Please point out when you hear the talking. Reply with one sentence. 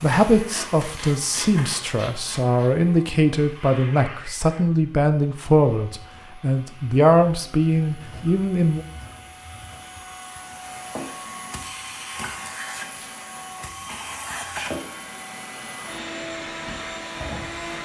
The talking can be heard from 0.0 to 8.8 s.